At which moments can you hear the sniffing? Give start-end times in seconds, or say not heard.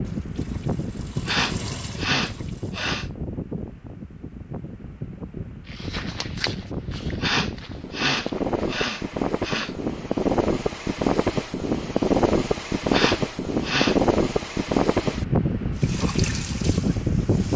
1.2-3.0, 7.2-9.8, 12.9-14.0.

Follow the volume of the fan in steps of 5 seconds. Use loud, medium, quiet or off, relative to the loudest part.
medium, medium, loud, loud.